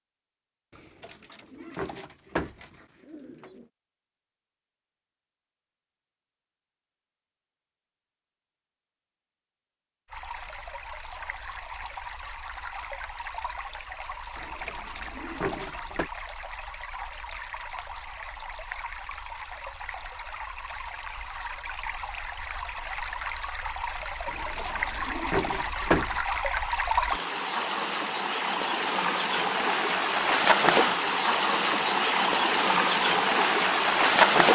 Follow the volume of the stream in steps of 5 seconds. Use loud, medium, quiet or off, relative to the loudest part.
off, off, quiet, quiet, quiet, medium, loud.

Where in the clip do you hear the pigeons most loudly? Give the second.
26 s.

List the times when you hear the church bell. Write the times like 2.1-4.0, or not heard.
not heard.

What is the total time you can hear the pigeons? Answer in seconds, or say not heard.
7 s.